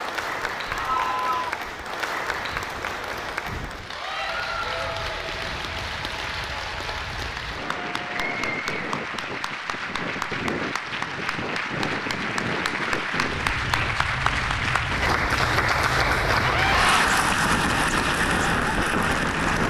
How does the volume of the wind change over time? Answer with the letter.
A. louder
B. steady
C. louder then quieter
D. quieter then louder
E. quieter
A.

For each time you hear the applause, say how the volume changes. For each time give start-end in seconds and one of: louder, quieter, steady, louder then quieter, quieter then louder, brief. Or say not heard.
0.0-19.6 louder.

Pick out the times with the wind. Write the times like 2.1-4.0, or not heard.
0.0-19.6.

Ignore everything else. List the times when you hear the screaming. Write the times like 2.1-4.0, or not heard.
0.7-1.6, 16.4-17.1.